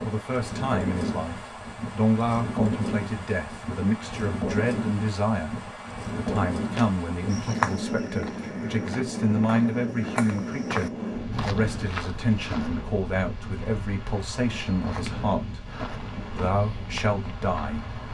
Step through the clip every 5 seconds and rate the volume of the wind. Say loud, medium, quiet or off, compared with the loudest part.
loud, loud, loud, medium.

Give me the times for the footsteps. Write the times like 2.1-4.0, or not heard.
6.8-12.8, 14.7-18.1.